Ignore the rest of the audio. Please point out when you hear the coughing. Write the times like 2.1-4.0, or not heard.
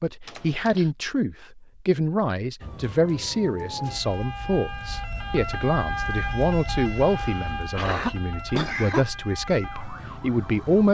0.2-0.9, 7.0-9.1.